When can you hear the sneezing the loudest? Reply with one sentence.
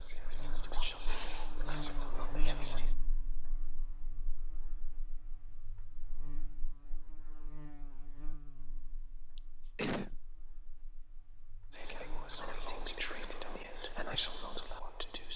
The volume of the sneezing peaks at 10 seconds.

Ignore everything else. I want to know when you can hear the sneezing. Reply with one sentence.
You can hear the sneezing from 1.1 to 1.6 s and from 9.3 to 10.2 s.